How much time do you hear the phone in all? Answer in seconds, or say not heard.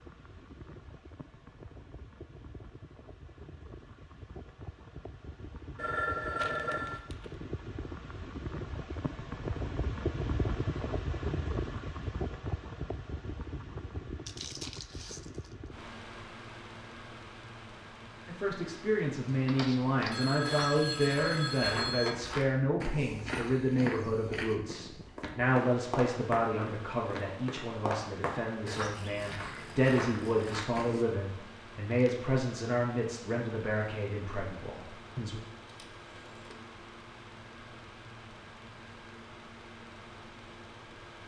4 s.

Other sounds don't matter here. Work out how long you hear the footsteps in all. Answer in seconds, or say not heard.
12 s.